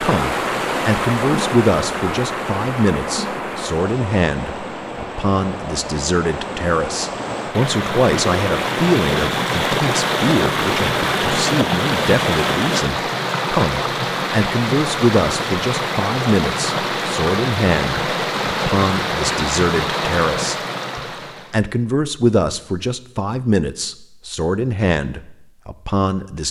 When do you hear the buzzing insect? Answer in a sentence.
You can't hear the buzzing insect here.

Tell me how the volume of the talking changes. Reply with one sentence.
The volume of the talking stays about the same.